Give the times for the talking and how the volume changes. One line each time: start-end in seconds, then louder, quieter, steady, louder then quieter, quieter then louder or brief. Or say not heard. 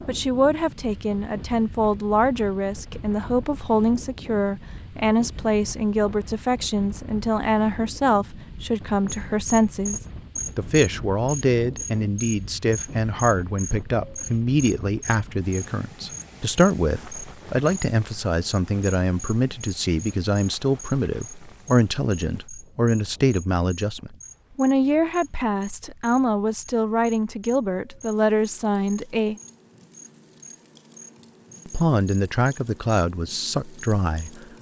0.1-29.4 steady
31.6-34.5 brief.